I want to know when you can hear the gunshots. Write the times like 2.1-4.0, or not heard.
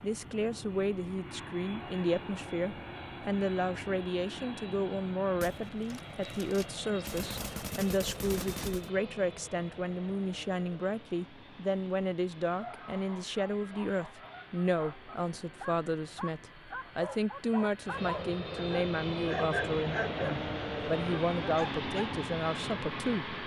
5.3-8.9.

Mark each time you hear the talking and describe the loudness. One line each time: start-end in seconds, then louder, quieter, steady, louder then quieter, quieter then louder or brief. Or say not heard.
0.0-23.4 steady.